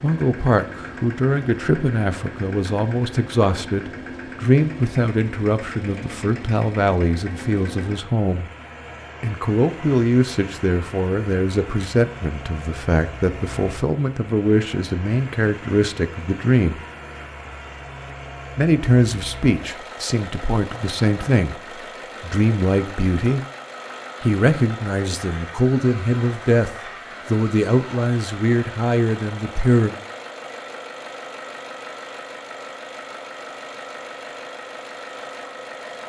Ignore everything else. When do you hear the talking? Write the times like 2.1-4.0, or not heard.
0.0-8.4, 9.2-16.8, 18.6-21.6, 22.2-23.4, 24.2-29.9.